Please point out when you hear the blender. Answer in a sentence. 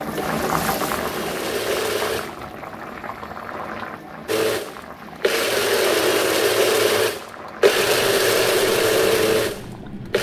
The blender can be heard from 0.1 to 2.4 s and from 4.2 to 10.1 s.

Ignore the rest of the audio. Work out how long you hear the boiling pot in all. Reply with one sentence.
The boiling pot can be heard for 10 seconds in total.